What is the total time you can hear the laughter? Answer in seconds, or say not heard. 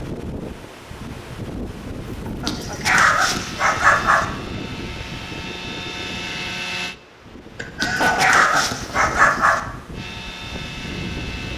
2 s.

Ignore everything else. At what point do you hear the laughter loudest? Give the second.
8 s.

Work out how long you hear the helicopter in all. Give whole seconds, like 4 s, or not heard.
5 s.